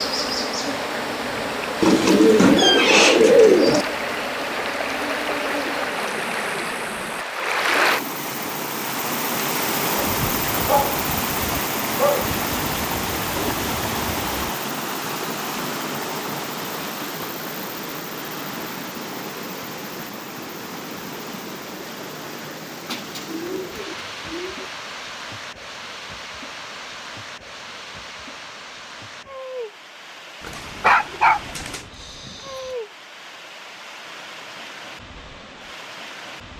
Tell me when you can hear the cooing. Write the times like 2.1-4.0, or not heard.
1.8-3.9, 12.5-14.5, 22.9-24.7, 30.4-31.9.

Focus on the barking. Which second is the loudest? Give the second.
31 s.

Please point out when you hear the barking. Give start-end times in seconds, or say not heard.
10.0-12.4, 30.4-31.4, 32.0-32.7.